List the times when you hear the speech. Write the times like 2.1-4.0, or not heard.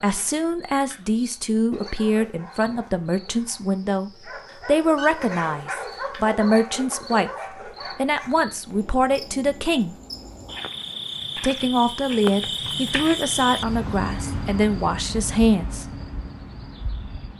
0.0-7.3, 8.0-9.9, 11.4-15.8.